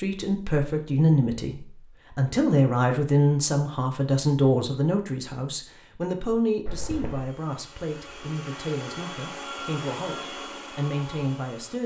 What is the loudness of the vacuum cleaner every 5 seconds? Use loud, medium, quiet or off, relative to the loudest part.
off, loud, loud.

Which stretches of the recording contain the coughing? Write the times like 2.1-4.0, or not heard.
6.7-7.2.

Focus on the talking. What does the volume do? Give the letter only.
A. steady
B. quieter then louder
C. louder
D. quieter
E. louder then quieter
D.